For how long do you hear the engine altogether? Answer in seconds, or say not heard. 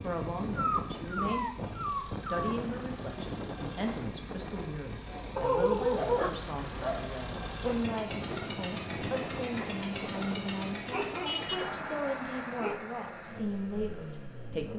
15 s.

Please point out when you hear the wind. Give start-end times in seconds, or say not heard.
0.0-10.8.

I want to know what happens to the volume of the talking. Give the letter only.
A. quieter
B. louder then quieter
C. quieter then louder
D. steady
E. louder
D.